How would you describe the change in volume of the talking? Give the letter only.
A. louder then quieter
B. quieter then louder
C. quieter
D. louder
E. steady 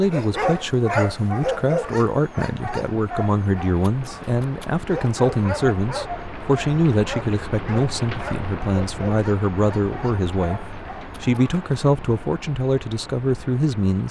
E.